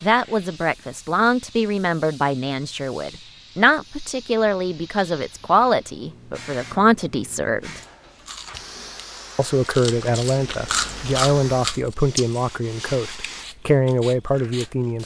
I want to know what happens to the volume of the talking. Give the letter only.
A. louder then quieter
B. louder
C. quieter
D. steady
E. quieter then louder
D.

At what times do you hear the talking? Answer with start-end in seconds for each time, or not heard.
0.0-7.8, 9.3-15.0.